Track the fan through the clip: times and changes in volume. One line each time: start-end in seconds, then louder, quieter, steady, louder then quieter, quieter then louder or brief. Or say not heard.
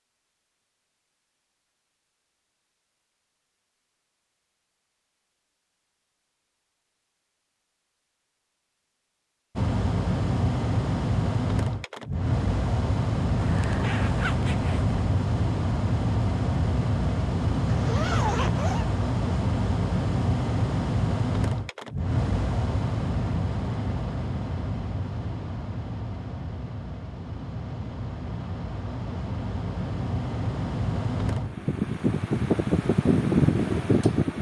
9.6-34.3 quieter then louder.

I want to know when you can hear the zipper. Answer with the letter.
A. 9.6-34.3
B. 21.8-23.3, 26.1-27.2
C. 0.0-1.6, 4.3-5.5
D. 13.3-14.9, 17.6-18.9
D.